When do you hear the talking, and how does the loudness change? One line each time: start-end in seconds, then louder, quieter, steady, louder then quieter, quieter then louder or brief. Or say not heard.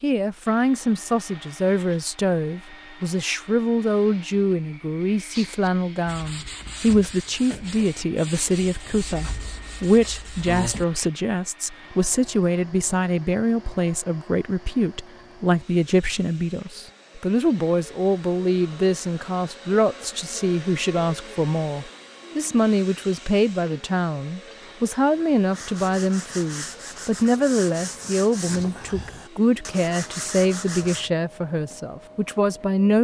0.0-33.0 steady.